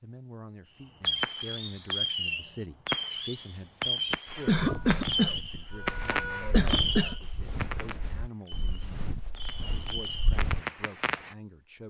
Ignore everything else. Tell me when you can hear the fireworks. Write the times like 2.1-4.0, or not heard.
1.0-11.3.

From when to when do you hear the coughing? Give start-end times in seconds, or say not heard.
4.5-7.2.